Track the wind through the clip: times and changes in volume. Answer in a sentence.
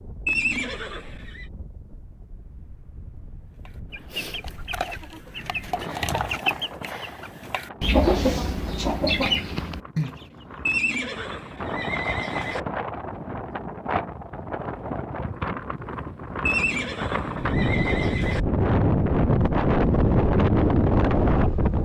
You can hear the wind from 0.0 to 21.8 s, getting louder.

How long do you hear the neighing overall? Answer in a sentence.
You can hear the neighing for 5 seconds altogether.